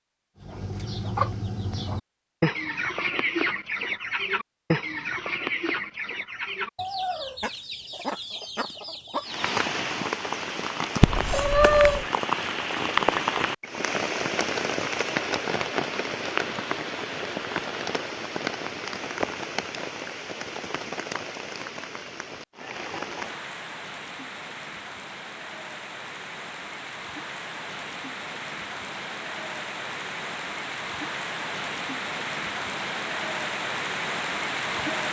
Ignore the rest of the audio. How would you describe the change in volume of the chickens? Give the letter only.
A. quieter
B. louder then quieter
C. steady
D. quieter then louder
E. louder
A.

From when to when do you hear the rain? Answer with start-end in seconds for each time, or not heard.
9.2-35.0.